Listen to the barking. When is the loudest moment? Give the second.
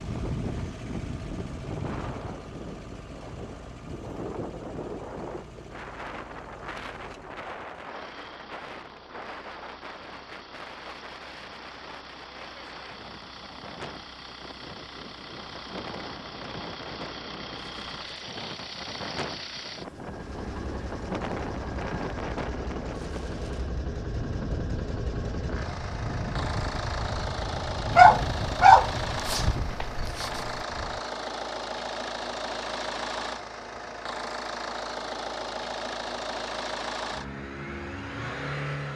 28 s.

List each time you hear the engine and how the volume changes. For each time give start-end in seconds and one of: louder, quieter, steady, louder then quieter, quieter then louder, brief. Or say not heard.
0.0-38.9 louder.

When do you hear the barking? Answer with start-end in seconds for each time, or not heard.
27.9-30.4.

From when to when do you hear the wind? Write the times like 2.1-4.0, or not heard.
0.0-31.0.